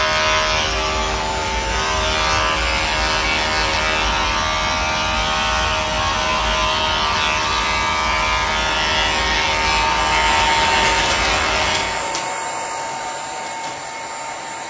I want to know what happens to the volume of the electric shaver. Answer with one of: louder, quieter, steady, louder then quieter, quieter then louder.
steady.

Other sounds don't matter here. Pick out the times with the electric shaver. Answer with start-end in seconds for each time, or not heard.
0.0-12.2.